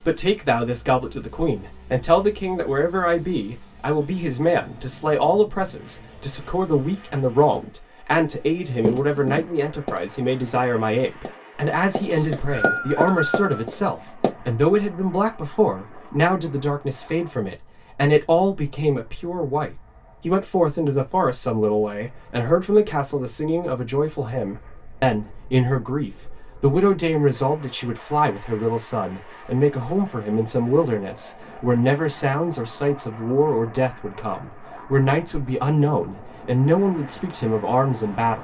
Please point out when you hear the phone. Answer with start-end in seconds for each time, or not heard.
not heard.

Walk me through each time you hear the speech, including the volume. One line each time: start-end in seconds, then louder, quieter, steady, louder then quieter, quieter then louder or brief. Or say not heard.
0.0-38.4 steady.